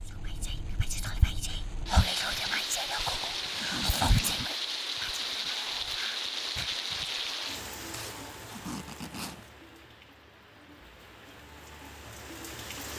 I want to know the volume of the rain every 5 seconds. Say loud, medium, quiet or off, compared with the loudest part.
loud, loud, medium.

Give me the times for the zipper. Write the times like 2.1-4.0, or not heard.
3.0-4.5, 7.9-9.5.